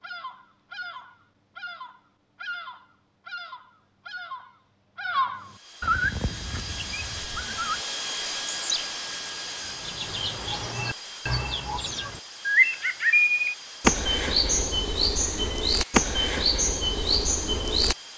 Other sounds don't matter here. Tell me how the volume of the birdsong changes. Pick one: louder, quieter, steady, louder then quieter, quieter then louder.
louder.